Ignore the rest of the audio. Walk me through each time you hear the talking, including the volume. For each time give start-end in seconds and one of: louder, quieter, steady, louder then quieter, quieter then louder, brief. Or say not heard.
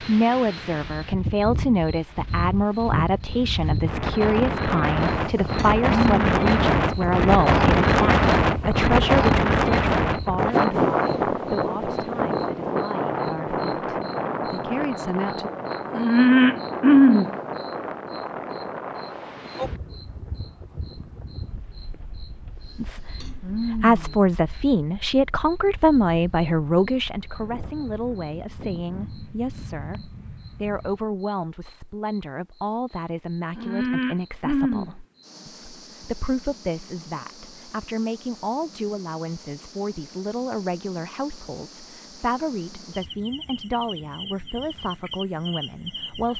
0.0-15.5 quieter
22.8-46.3 quieter.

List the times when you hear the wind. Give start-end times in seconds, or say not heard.
0.0-31.1.